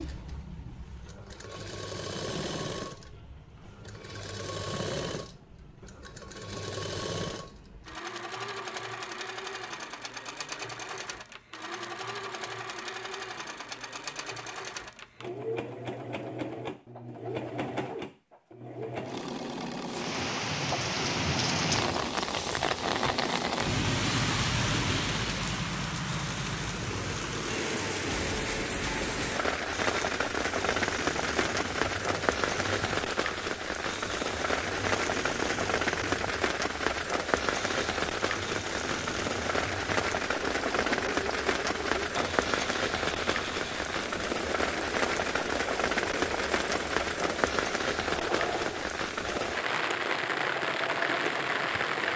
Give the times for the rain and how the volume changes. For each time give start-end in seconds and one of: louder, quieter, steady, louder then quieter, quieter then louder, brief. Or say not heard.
19.9-52.1 steady.